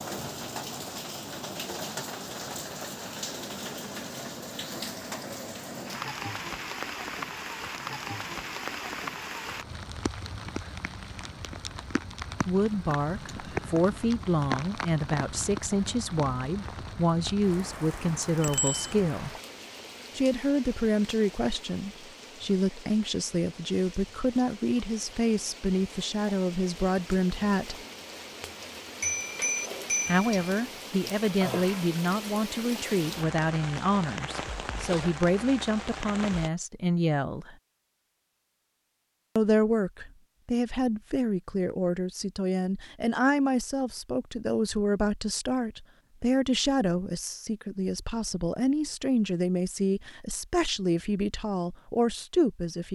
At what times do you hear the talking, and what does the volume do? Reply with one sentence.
You can hear the talking from 12.4 to 19.4 s, at a steady volume; from 20.1 to 27.8 s, at a steady volume; from 30.1 to 37.5 s, at a steady volume; and from 39.4 to 52.9 s, at a steady volume.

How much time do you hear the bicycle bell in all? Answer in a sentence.
You can hear the bicycle bell for 2 seconds altogether.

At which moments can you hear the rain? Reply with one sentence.
The rain can be heard from 0.0 to 36.5 s.